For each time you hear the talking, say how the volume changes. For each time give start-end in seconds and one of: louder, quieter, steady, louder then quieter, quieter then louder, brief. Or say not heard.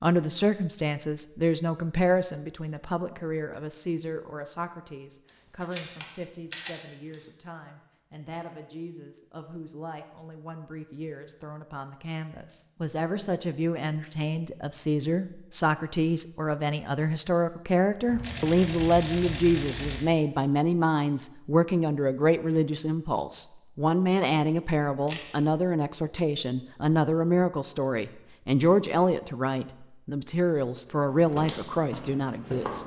0.0-32.8 quieter then louder.